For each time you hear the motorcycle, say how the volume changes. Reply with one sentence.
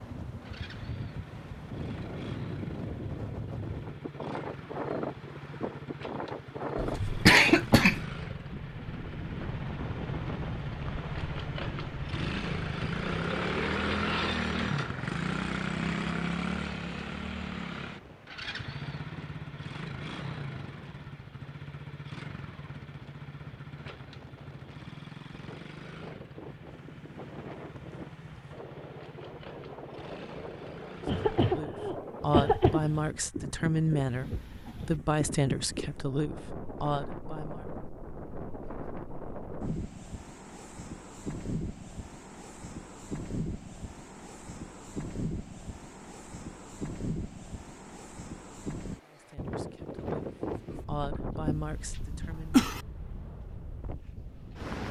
You can hear the motorcycle from 0.2 to 31.6 s, getting louder then quieter.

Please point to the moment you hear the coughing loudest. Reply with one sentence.
The volume of the coughing peaks at 7 seconds.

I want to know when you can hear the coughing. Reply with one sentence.
The coughing can be heard from 6.8 to 8.1 s, from 31.1 to 32.9 s and from 51.5 to 52.8 s.